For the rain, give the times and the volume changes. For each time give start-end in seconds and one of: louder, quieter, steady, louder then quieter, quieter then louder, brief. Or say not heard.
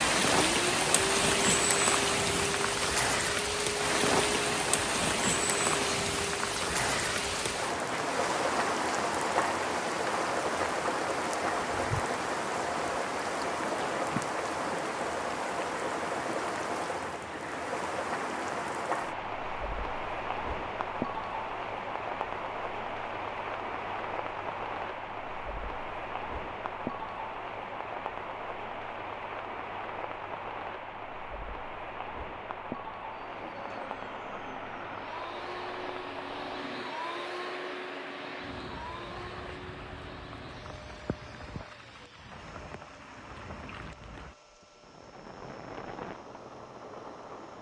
0.0-47.5 quieter.